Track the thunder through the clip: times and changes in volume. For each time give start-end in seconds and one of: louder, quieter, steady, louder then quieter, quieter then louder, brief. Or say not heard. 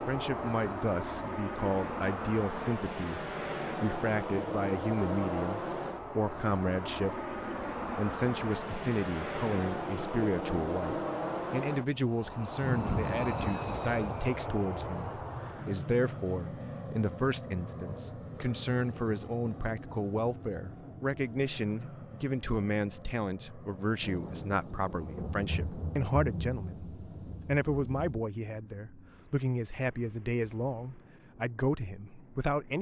12.6-14.0 brief
24.0-28.2 louder then quieter.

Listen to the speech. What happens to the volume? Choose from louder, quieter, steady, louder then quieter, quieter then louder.
steady.